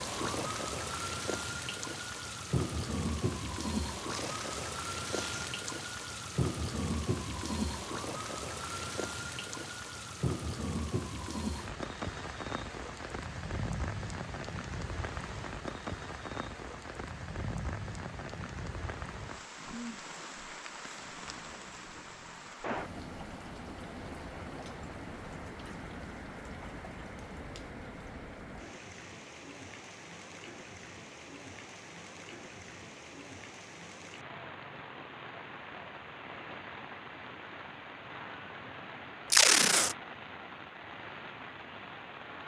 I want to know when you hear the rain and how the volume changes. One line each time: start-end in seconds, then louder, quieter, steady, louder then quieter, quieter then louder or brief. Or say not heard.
0.0-42.4 quieter.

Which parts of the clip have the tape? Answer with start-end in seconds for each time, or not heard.
4.0-5.7, 39.3-40.0.